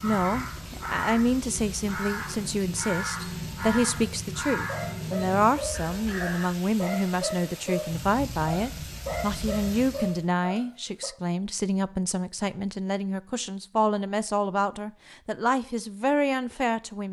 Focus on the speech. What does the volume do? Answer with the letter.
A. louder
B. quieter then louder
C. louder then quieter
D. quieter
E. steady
E.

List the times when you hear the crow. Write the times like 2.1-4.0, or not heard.
0.0-6.5.